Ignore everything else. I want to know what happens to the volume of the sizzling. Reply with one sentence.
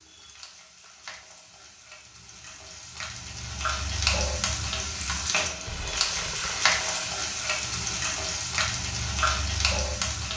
The volume of the sizzling goes up.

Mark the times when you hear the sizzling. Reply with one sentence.
You can hear the sizzling from 0.0 to 10.3 s.